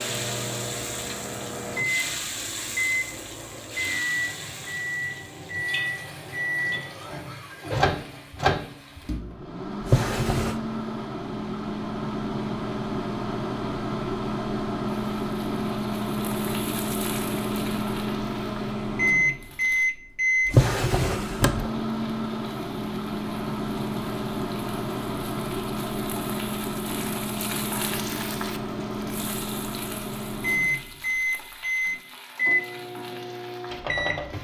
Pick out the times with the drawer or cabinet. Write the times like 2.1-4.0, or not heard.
9.8-10.6, 20.4-21.7.